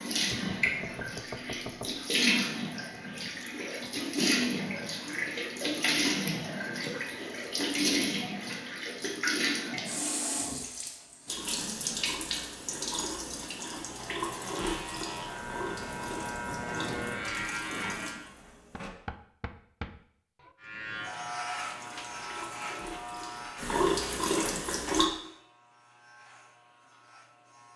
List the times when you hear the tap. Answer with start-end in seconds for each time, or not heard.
0.0-18.9, 21.6-25.1.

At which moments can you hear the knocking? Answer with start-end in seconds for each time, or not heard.
0.3-1.9, 18.7-20.6.